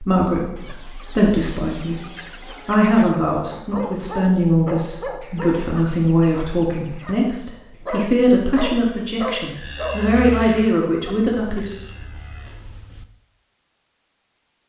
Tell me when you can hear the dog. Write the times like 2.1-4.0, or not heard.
3.5-5.5, 7.8-9.9.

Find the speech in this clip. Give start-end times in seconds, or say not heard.
0.0-2.0, 2.6-11.7.